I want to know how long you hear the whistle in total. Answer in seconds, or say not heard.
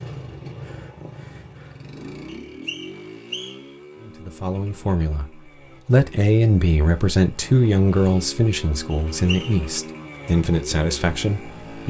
2 s.